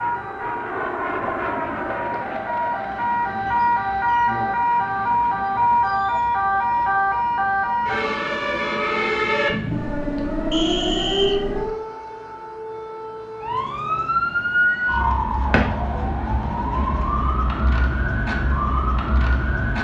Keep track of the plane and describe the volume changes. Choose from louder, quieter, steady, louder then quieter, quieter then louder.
quieter.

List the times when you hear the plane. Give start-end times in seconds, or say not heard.
0.0-5.8.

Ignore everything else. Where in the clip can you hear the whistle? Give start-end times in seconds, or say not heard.
10.5-11.4.